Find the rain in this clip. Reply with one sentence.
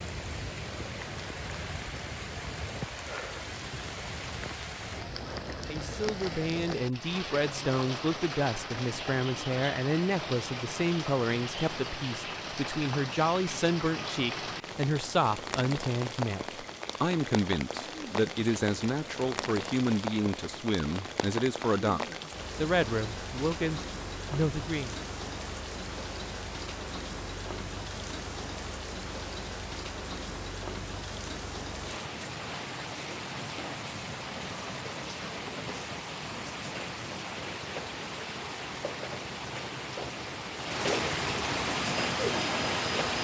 You can hear the rain from 0.0 to 43.1 s.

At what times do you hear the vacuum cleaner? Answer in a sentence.
The vacuum cleaner can be heard from 41.7 to 43.1 s.